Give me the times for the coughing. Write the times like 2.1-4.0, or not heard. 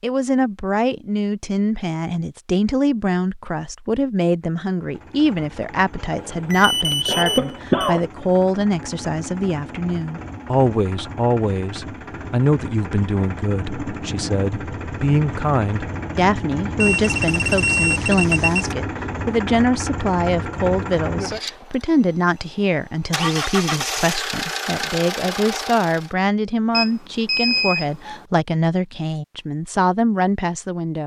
7.0-8.0.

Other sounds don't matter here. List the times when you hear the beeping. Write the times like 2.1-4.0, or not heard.
6.2-7.9, 16.8-18.8, 26.7-28.2.